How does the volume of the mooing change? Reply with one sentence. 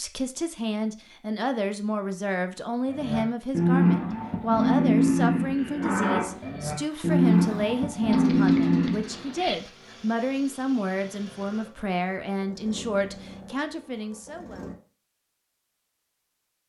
The volume of the mooing goes down, then up.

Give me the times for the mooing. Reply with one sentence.
The mooing can be heard from 2.9 to 9.2 s.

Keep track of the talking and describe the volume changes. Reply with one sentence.
The loudness of the talking stays about the same.